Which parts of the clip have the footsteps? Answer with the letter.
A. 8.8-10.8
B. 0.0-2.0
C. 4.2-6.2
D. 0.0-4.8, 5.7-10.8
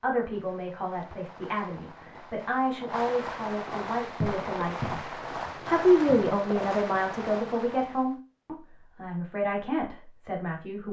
C.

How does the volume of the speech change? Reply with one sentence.
The volume of the speech goes up, then down.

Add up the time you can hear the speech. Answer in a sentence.
The speech can be heard for 10 seconds in total.